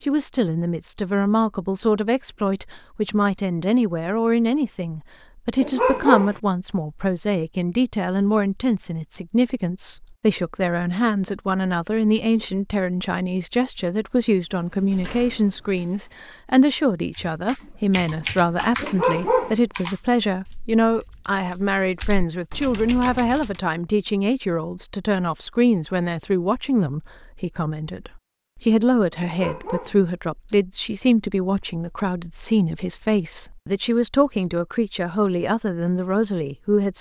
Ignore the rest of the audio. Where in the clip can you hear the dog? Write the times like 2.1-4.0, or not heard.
5.5-6.3, 18.8-19.6, 29.2-29.9.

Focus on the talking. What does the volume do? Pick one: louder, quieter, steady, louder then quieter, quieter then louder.
steady.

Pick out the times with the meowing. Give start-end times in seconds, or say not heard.
not heard.